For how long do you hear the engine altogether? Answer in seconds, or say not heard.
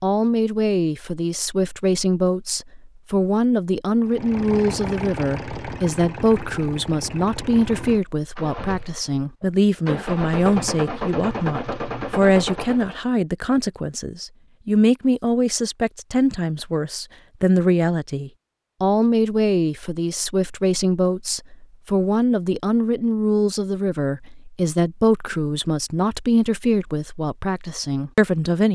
9 s.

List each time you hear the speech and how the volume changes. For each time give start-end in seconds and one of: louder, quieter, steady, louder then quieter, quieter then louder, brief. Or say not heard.
0.0-28.7 steady.